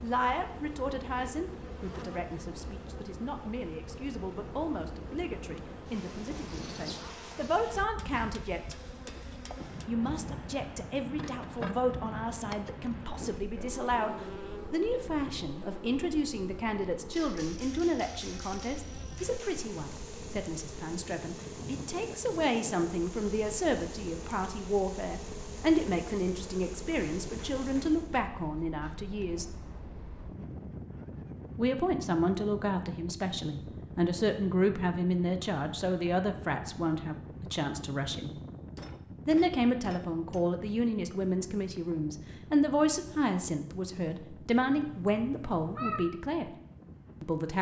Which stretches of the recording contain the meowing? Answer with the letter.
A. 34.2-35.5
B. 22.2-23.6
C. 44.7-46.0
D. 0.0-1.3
C.